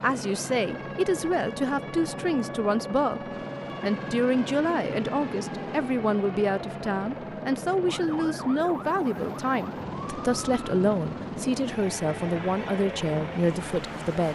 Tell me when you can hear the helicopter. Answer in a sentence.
You can hear the helicopter from 0.0 to 14.3 s.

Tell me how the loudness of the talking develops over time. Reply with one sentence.
The loudness of the talking stays about the same.